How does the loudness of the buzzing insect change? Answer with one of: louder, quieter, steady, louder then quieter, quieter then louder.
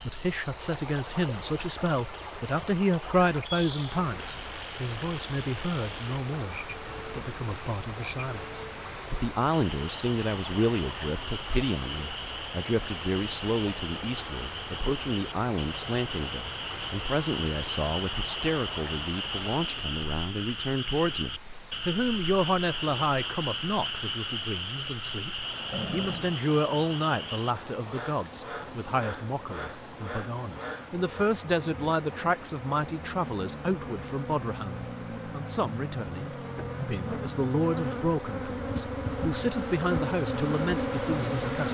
louder.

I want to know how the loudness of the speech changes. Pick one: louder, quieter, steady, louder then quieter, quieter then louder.
steady.